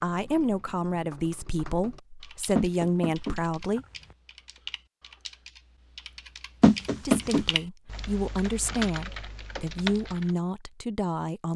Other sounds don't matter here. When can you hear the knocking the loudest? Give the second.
7 s.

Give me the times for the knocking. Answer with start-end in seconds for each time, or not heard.
2.5-4.2, 6.6-7.5.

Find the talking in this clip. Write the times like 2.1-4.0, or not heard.
0.0-3.9, 7.0-11.5.